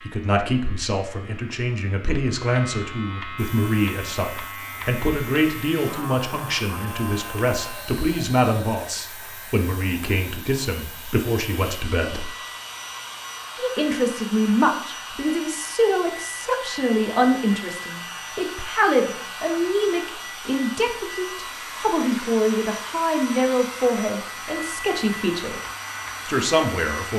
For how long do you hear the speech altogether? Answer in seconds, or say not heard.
25 s.